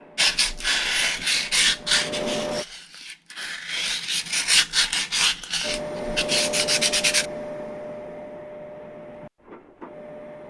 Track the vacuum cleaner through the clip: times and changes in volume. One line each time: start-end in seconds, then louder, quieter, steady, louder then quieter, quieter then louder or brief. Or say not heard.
0.0-2.6 brief
5.6-10.4 quieter.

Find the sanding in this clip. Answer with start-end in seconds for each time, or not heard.
0.1-7.2.